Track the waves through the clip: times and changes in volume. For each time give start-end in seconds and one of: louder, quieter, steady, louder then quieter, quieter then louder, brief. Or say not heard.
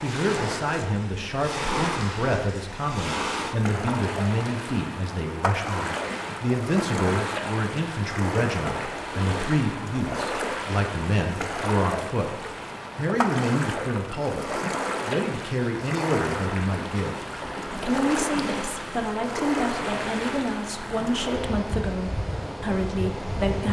0.0-23.6 steady.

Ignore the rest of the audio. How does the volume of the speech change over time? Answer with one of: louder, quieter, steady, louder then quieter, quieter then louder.
steady.